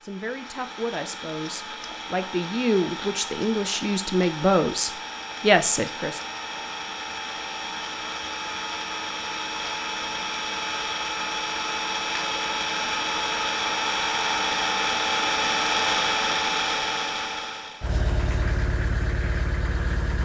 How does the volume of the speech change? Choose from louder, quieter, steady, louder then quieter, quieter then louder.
louder.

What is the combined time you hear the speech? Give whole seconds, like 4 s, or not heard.
6 s.